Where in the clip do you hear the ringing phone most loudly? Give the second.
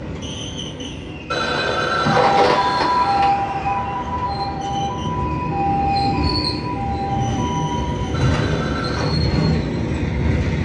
2 s.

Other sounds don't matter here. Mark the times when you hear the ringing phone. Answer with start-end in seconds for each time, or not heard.
1.3-3.3, 8.1-9.2.